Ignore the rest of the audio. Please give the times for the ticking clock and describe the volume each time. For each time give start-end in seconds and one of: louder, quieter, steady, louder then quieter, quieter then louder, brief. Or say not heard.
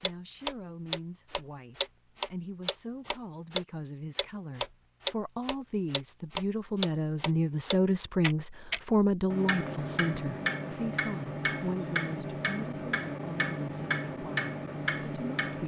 0.0-15.6 steady.